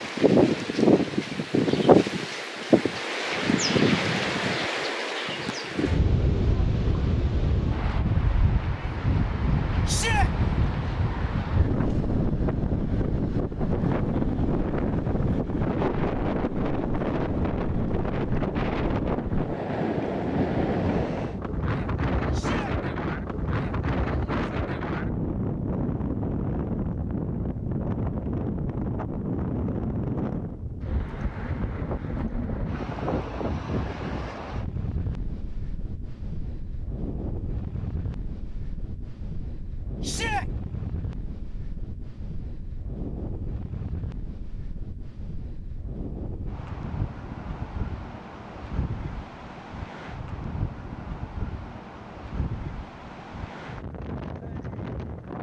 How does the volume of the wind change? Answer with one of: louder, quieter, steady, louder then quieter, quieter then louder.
quieter.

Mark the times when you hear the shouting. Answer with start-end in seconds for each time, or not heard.
9.8-10.3, 22.3-22.8, 40.0-40.5.